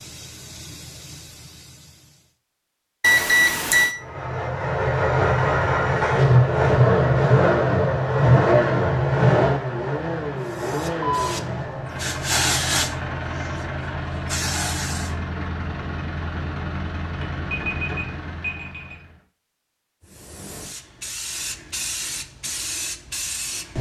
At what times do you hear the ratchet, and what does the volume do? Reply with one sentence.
You can't hear the ratchet here.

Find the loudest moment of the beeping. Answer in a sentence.
The loudest moment of the beeping is at 3 seconds.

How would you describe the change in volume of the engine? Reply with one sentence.
The loudness of the engine goes down.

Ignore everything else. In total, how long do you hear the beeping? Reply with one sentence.
You can hear the beeping for 3 seconds altogether.